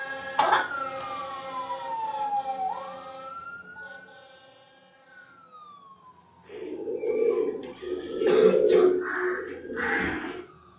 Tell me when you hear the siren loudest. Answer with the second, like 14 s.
2 s.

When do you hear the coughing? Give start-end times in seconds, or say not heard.
0.3-1.1, 8.2-8.9.